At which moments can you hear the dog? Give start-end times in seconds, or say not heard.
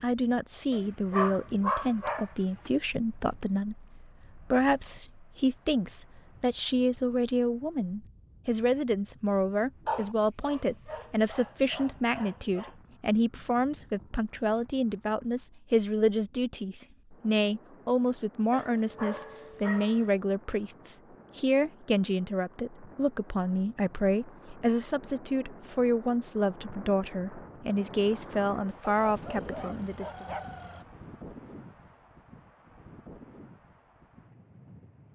0.7-2.7, 9.8-12.7, 18.5-20.1, 28.8-30.9.